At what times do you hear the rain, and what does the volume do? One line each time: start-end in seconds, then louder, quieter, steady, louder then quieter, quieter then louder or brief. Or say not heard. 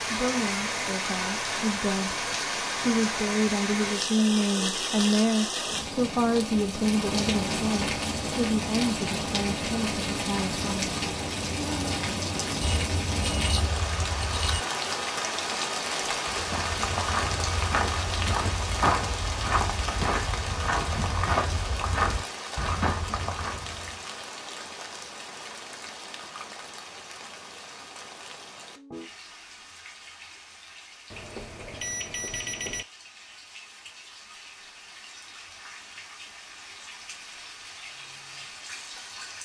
0.0-39.4 quieter.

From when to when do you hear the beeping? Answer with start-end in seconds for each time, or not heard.
12.6-14.6, 31.1-32.9.